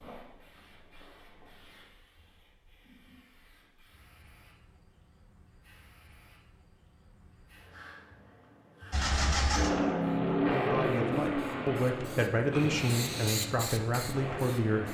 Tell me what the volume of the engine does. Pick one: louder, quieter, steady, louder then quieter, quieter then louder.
quieter.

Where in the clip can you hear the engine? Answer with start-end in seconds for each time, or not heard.
8.9-14.8.